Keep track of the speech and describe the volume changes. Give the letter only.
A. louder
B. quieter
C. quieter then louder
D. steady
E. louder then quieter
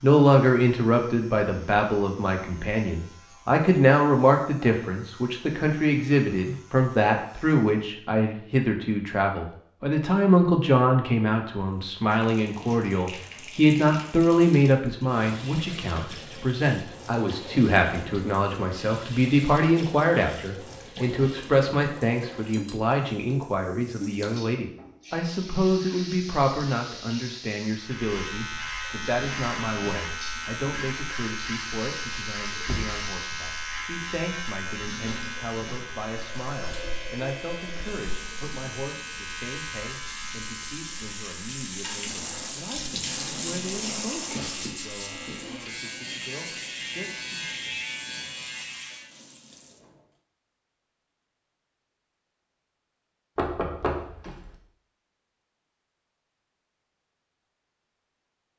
B.